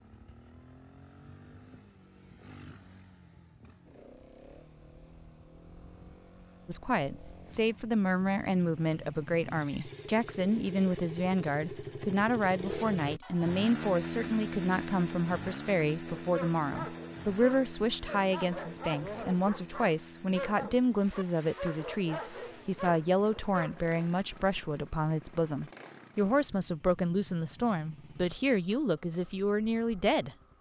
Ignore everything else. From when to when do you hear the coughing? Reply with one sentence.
You can't hear the coughing here.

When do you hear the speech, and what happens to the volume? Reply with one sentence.
You can hear the speech from 6.7 to 30.4 s, at a steady volume.